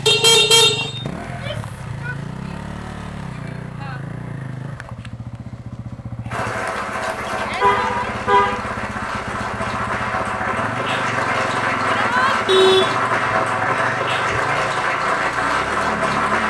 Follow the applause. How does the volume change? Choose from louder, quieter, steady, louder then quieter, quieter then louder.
louder.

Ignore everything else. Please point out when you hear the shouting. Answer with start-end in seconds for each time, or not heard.
1.2-4.0, 7.3-8.1, 11.8-12.4.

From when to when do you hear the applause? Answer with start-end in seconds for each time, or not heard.
6.3-16.4.